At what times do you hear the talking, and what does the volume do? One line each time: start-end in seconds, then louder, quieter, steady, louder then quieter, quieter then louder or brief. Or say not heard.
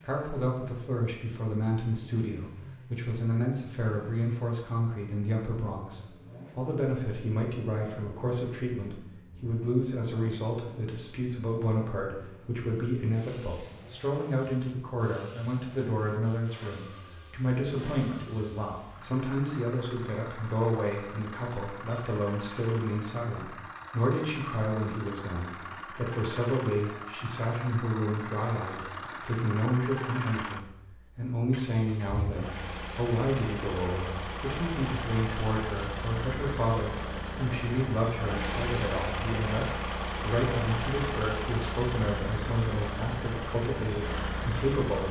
0.0-45.0 steady.